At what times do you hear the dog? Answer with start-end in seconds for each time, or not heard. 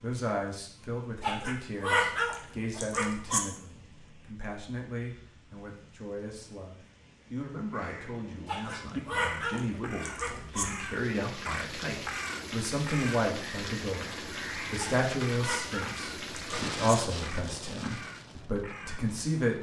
1.2-3.4, 8.4-10.7, 14.8-16.8.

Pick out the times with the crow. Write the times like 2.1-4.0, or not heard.
7.7-19.1.